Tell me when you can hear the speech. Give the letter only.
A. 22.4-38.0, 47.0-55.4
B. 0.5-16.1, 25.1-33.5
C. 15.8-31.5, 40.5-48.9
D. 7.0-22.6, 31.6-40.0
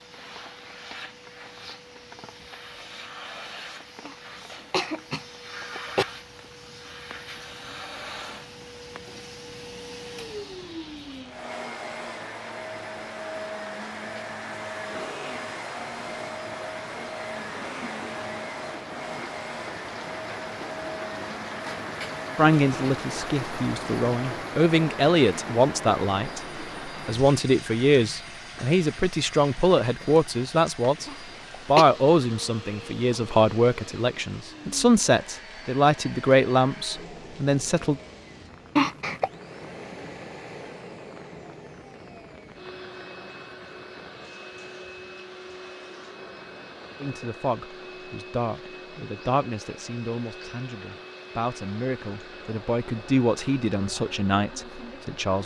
A.